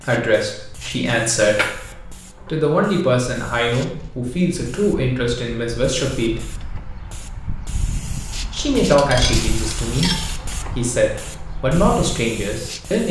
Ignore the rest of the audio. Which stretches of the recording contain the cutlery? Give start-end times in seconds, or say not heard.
0.8-2.5, 8.8-10.3.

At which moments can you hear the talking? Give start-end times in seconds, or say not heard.
0.0-1.9, 2.5-6.5, 8.5-13.0.